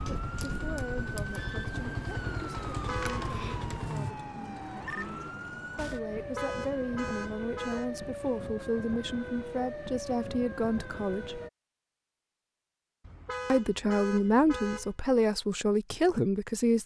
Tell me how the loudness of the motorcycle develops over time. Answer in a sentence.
The loudness of the motorcycle stays about the same.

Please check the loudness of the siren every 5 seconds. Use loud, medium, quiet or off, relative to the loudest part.
loud, loud, loud, off.